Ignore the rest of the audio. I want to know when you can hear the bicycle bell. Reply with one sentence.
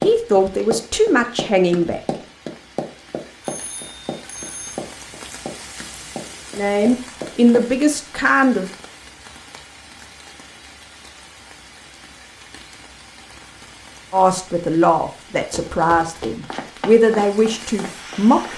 You can hear the bicycle bell from 3.4 to 4.8 s.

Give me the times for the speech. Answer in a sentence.
The speech can be heard from 0.0 to 2.0 s, from 6.5 to 8.7 s and from 14.1 to 18.5 s.